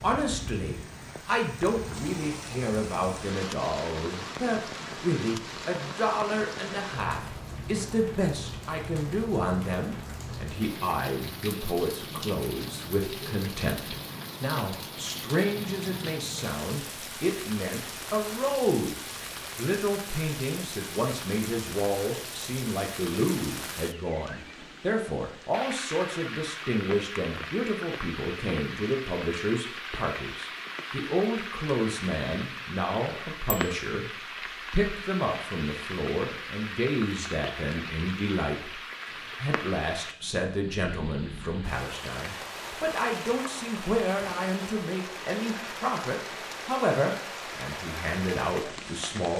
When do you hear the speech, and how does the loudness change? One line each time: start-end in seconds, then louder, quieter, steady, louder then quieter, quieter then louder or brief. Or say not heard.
0.0-34.1 steady
34.7-49.3 steady.